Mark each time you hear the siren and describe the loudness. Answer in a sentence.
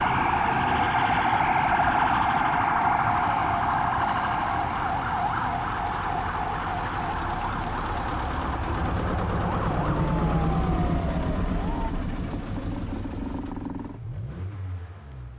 The siren can be heard from 0.0 to 11.9 s, getting quieter.